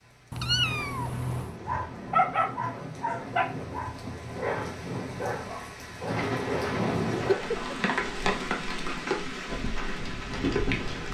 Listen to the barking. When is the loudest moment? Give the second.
2 s.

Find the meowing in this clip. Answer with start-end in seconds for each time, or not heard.
0.3-1.6, 7.3-8.2.